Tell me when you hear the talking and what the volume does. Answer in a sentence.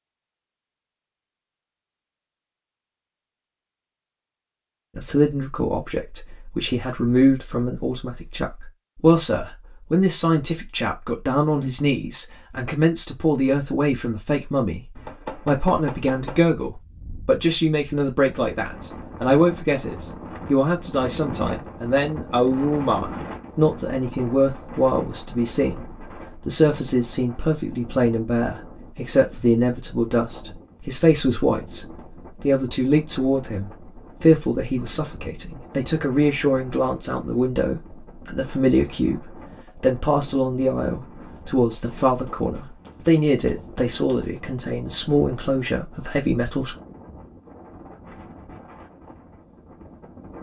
You can hear the talking from 5.0 to 46.8 s, at a steady volume.